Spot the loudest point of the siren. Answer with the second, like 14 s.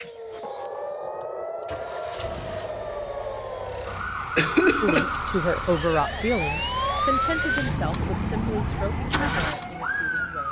7 s.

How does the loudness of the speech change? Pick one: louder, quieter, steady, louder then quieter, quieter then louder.
quieter.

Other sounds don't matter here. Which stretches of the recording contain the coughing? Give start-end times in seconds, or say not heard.
4.3-5.2.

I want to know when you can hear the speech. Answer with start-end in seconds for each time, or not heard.
4.8-10.4.